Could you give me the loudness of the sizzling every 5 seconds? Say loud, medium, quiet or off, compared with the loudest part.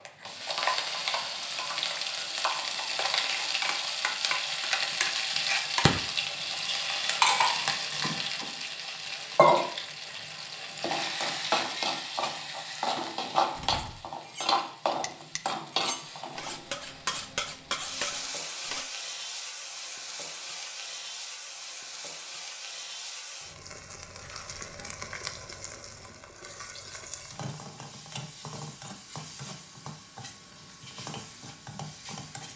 loud, loud, loud, medium, quiet, quiet, quiet.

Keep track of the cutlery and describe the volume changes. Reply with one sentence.
The loudness of the cutlery goes up.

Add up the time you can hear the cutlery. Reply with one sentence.
The cutlery can be heard for 5 seconds in total.